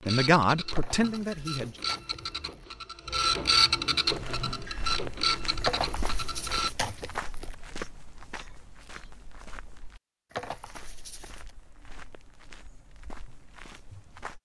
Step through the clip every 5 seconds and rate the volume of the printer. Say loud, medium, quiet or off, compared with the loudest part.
loud, loud, off.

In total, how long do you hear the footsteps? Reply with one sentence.
You can hear the footsteps for 10 seconds altogether.